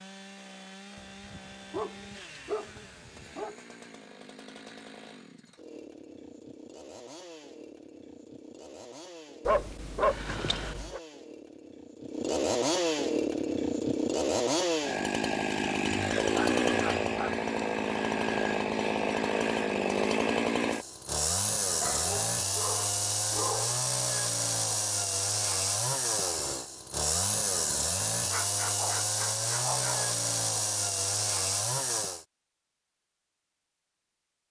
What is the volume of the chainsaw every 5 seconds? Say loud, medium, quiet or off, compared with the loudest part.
quiet, quiet, loud, loud, loud, loud, loud.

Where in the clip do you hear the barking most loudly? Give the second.
10 s.